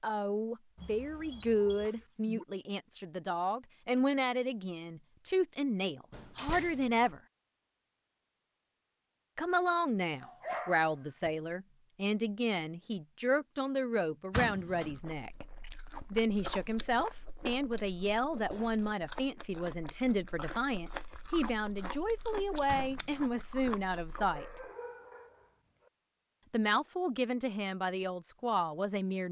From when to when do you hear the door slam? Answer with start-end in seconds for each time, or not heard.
6.1-6.9, 14.3-14.9, 22.6-23.3.